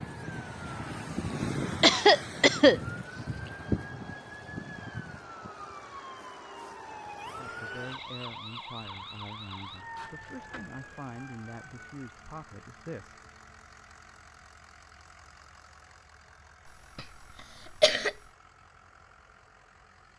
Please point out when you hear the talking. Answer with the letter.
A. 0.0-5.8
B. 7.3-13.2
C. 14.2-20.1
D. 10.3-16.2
B.